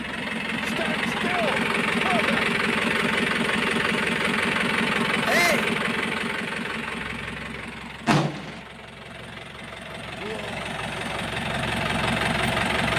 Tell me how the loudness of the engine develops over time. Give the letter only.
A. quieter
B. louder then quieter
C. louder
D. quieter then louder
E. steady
D.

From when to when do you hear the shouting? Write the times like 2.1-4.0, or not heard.
0.6-2.4, 5.2-5.7, 10.2-11.1.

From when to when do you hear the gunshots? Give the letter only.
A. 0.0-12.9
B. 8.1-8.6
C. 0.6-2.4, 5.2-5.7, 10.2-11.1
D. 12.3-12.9
B.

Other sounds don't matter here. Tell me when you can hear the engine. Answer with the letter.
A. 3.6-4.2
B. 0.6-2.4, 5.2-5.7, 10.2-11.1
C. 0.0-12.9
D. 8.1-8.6
C.